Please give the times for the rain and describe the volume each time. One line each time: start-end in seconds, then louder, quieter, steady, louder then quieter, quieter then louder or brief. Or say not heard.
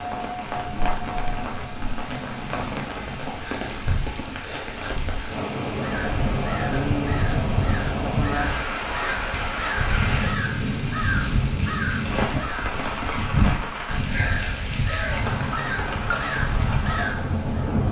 0.0-17.8 steady.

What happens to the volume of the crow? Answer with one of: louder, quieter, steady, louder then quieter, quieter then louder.
steady.